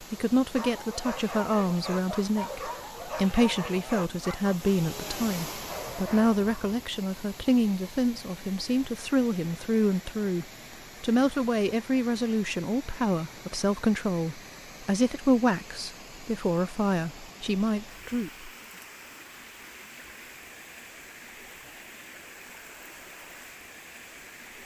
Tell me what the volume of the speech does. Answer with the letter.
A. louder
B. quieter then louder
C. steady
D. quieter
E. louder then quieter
C.